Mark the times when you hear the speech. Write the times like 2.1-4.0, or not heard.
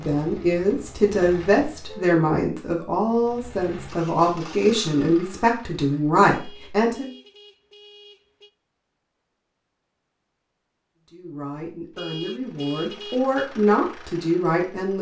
0.0-7.1, 11.1-14.9.